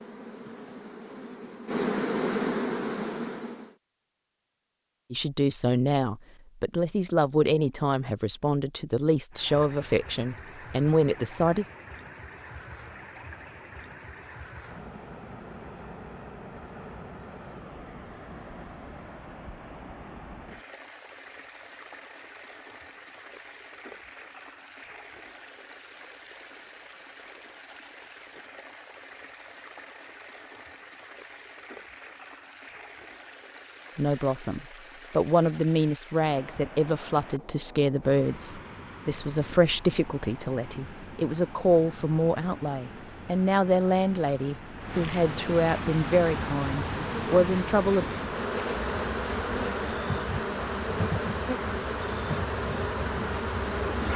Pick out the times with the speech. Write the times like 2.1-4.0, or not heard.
5.1-11.7, 34.0-48.0.